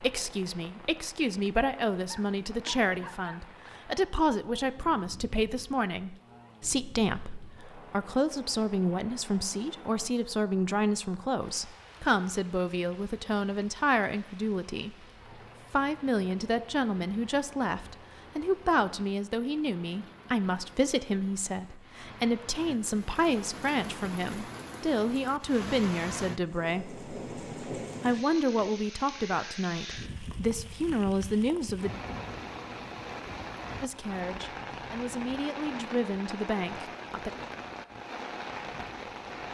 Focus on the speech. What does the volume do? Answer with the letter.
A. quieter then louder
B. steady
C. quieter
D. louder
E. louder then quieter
B.